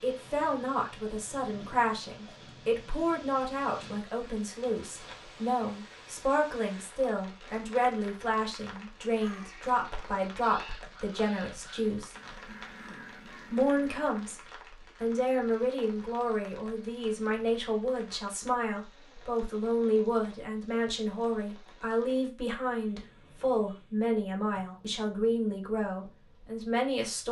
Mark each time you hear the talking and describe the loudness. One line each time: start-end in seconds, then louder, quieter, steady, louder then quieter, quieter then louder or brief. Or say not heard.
0.0-12.2 steady
13.5-14.4 brief
15.0-27.2 steady.